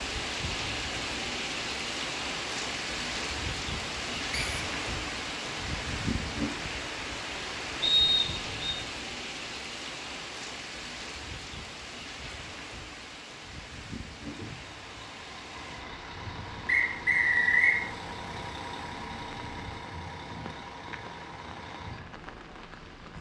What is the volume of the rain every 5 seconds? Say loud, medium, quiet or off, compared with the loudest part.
loud, loud, medium, quiet, quiet.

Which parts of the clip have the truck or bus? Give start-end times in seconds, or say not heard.
14.2-23.1.